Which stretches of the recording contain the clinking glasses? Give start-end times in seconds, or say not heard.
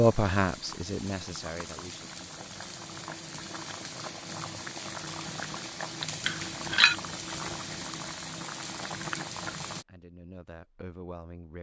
6.2-7.0.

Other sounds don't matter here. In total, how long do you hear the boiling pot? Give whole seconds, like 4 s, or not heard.
10 s.